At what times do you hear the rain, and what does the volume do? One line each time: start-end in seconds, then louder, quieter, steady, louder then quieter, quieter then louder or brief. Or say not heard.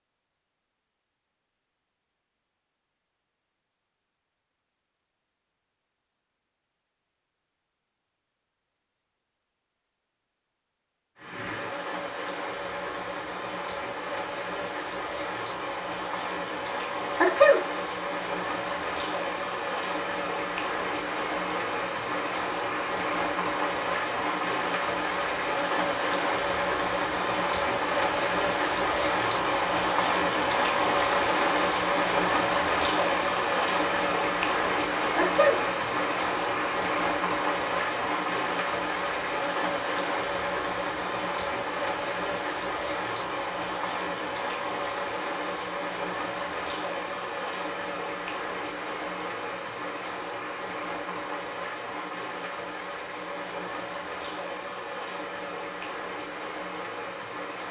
11.2-57.6 louder then quieter.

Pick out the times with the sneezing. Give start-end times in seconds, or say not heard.
17.2-17.6, 35.1-35.6.